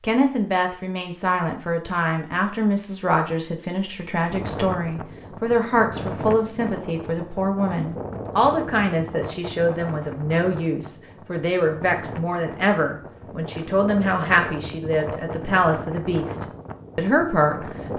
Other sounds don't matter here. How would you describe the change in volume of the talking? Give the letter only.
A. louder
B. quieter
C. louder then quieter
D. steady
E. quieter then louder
D.